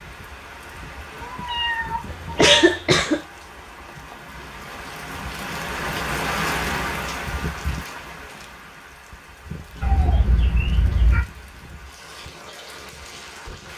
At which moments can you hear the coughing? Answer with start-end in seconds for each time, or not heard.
2.0-3.2.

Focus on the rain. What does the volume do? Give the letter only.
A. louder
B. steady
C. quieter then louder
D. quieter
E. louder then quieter
E.